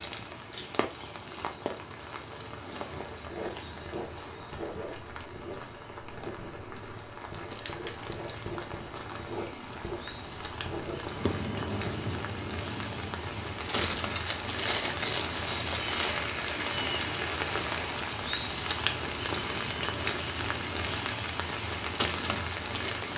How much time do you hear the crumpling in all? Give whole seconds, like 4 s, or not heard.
4 s.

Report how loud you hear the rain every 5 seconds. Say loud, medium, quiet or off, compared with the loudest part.
medium, medium, medium, loud, loud.